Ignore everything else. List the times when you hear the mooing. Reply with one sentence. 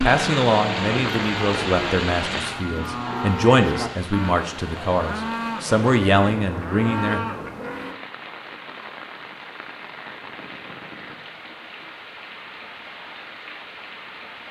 The mooing can be heard from 0.1 to 8.0 s.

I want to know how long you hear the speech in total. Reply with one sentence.
The speech can be heard for 7 seconds in total.